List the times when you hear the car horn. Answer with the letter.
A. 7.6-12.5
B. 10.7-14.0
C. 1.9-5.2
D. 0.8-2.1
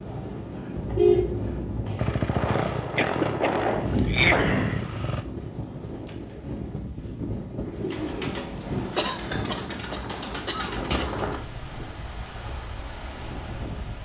D.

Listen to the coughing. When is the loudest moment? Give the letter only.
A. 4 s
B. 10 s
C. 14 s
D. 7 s
A.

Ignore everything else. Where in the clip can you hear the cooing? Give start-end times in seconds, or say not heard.
7.6-12.5.